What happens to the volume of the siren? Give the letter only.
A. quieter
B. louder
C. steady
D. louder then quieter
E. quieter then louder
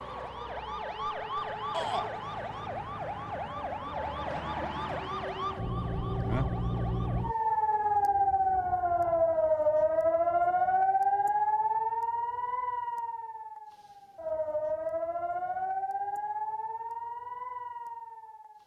D.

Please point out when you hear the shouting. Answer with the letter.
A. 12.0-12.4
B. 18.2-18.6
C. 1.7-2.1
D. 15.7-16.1
C.